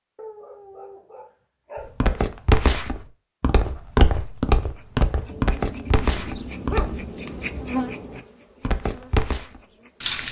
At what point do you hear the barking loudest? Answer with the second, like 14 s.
7 s.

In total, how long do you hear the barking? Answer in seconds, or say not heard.
5 s.